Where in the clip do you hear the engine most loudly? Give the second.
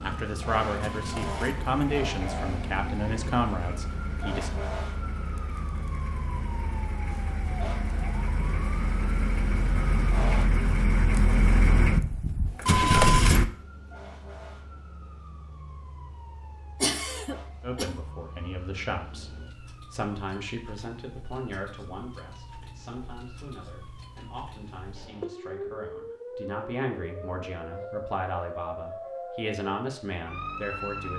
13 s.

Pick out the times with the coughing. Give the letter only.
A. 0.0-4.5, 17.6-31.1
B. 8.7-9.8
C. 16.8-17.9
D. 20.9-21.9
C.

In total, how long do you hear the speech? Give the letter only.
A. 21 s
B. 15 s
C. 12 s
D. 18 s
D.